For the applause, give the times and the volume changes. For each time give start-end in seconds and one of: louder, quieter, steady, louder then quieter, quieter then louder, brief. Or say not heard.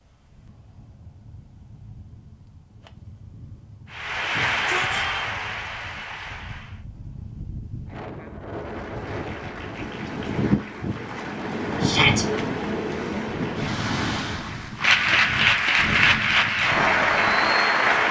3.9-6.8 brief
8.5-18.0 louder.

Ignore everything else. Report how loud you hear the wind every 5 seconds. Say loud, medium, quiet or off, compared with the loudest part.
quiet, medium, loud, medium.